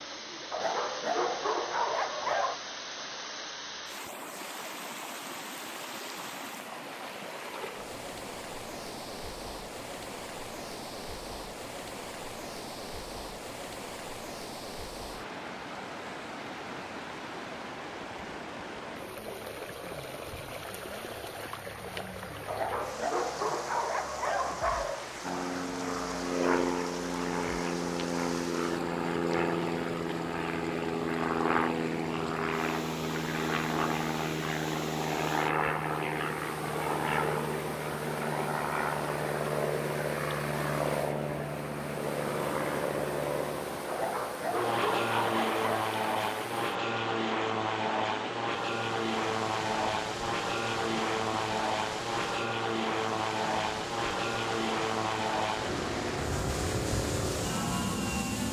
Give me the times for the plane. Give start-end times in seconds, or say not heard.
25.2-58.4.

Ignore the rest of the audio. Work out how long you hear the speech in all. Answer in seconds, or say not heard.
not heard.